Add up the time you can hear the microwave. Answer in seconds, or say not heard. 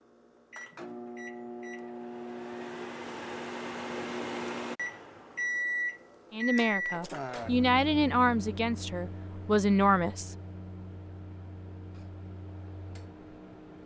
14 s.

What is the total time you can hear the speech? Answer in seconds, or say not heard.
4 s.